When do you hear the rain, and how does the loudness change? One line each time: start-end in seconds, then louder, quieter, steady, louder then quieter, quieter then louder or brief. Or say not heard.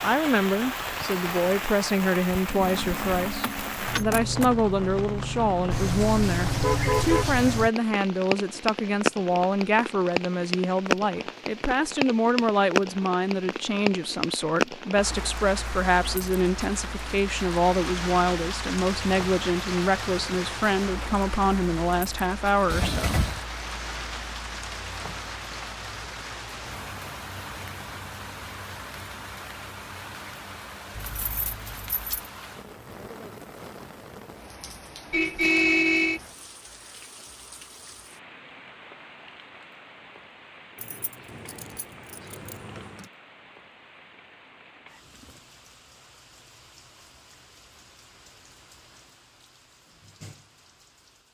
0.0-51.3 quieter.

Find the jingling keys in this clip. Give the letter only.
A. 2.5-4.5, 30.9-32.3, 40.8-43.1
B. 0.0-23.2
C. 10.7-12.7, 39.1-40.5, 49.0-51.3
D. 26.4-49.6
A.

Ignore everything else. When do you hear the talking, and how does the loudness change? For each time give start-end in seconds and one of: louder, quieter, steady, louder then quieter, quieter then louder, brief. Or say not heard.
0.0-23.2 steady.